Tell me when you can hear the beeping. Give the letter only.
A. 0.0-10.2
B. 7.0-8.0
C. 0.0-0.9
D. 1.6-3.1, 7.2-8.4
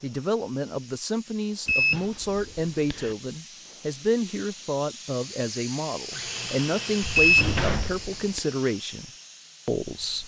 D.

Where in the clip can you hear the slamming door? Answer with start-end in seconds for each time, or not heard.
7.0-8.0.